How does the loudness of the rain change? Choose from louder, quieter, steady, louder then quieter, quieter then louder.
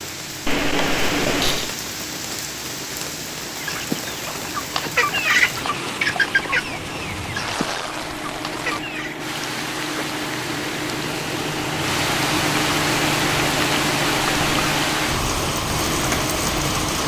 louder.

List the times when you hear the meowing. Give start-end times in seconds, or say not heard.
0.5-1.7.